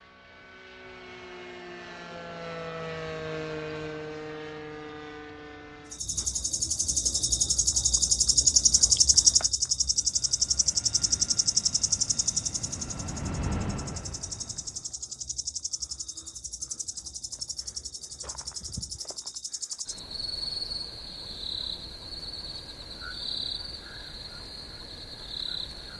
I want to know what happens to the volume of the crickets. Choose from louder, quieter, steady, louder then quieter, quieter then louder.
quieter.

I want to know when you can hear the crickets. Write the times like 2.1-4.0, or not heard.
5.9-25.9.